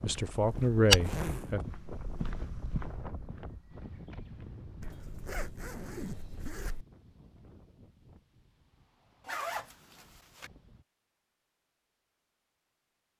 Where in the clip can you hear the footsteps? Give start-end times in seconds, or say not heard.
0.0-5.3.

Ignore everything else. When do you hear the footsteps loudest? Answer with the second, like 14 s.
1 s.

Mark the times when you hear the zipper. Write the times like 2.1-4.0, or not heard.
0.3-1.5, 4.8-6.8, 9.2-10.5.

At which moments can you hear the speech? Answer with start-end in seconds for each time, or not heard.
0.0-1.6.